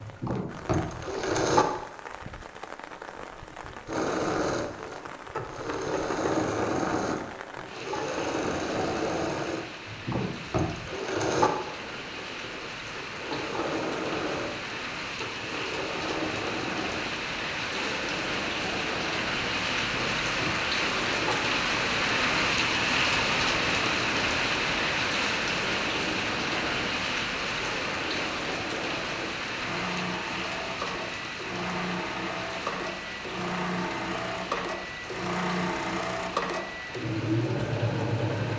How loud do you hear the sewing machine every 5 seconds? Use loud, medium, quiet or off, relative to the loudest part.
loud, loud, loud, medium, medium, medium, medium, loud.